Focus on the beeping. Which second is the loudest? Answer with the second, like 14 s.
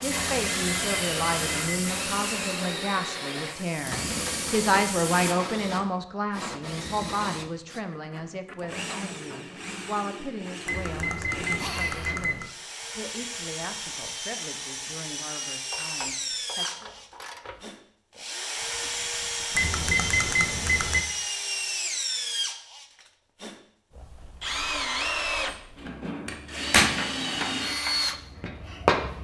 20 s.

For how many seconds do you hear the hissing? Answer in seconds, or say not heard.
5 s.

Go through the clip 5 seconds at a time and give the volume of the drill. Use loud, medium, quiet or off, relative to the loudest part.
loud, medium, medium, loud, loud, loud.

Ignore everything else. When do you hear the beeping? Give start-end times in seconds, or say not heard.
0.1-1.9, 10.7-12.5, 19.6-21.1.